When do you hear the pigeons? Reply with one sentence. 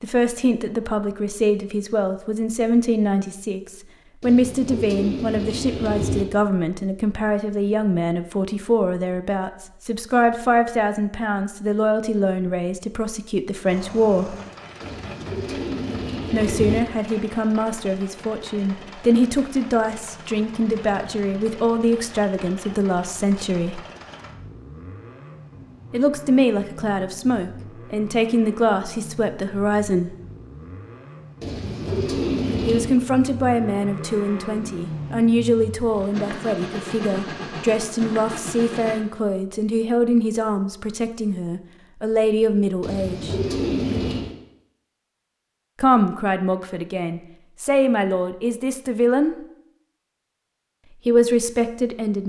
You can hear the pigeons from 4.2 to 6.2 s, from 14.8 to 16.8 s, from 31.4 to 33.0 s and from 42.8 to 44.4 s.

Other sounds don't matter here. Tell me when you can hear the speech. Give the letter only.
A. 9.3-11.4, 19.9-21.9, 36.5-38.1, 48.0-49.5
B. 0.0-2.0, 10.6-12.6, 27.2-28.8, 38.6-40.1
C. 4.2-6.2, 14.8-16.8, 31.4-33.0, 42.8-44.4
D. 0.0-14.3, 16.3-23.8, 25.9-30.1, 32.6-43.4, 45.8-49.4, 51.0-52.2
D.